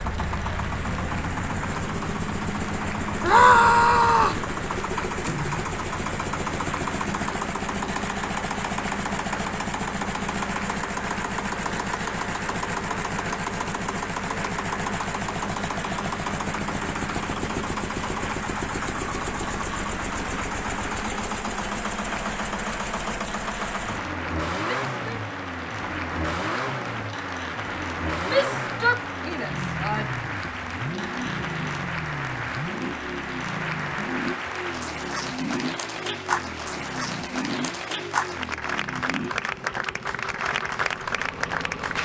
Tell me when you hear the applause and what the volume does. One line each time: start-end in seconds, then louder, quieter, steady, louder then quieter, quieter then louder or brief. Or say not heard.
0.0-41.9 louder.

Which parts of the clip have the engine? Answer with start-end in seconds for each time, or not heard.
0.0-41.9.